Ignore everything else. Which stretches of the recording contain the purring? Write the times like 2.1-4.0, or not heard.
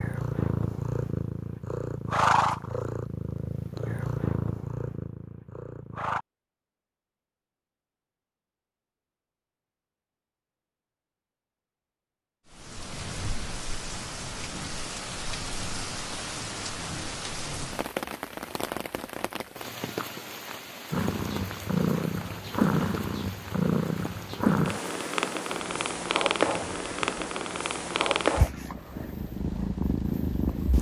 0.0-6.2, 20.9-30.7.